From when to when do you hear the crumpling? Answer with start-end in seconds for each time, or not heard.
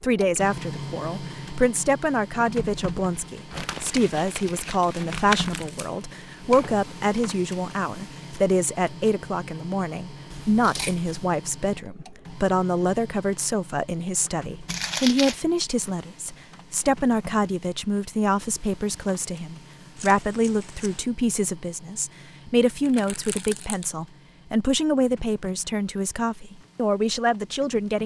3.5-5.7, 14.7-15.3, 22.9-23.9.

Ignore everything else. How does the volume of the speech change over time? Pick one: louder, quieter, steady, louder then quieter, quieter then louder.
steady.